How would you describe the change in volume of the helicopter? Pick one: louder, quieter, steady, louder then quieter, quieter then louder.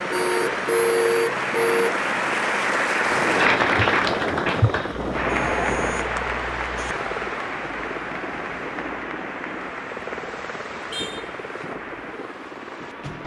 quieter.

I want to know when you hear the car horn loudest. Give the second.
1 s.